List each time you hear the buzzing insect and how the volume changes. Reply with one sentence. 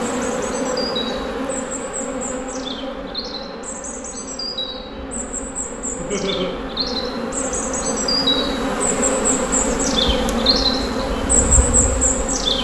The buzzing insect can be heard from 0.0 to 12.5 s, getting quieter then louder.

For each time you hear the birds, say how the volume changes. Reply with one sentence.
You can hear the birds from 0.1 to 12.5 s, getting louder.